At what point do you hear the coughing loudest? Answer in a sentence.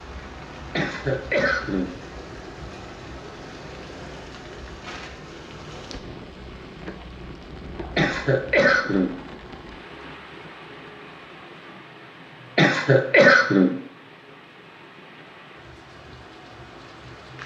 The loudest moment of the coughing is at 13 seconds.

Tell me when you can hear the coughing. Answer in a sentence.
You can hear the coughing from 0.8 to 1.9 s, from 8.0 to 9.2 s and from 12.6 to 13.8 s.